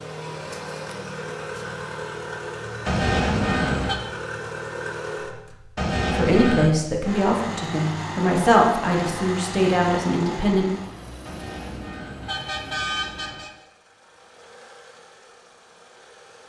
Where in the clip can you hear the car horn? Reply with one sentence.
The car horn can be heard from 2.9 to 4.0 s, from 5.8 to 6.7 s and from 11.2 to 13.5 s.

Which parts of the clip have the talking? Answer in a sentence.
You can hear the talking from 6.1 to 10.7 s.